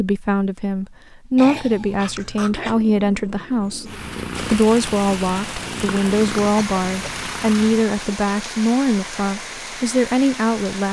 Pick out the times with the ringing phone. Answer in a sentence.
You can't hear the ringing phone here.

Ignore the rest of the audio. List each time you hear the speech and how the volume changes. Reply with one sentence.
You can hear the speech from 0.0 to 10.8 s, at a steady volume.